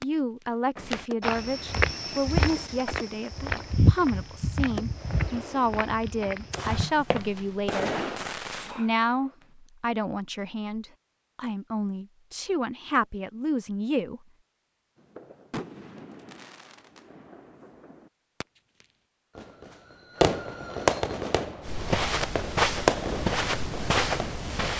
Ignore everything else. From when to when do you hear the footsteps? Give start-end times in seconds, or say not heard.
0.8-7.8, 21.6-24.7.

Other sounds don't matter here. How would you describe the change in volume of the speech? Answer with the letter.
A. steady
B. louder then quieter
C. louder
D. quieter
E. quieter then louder
A.